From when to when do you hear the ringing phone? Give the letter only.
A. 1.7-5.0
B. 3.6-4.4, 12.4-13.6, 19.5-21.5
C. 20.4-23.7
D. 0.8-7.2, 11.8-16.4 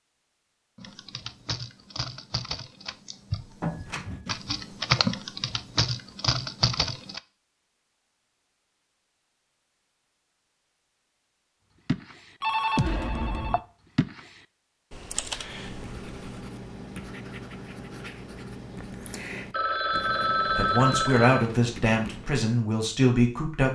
B.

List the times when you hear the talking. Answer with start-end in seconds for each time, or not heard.
20.4-23.7.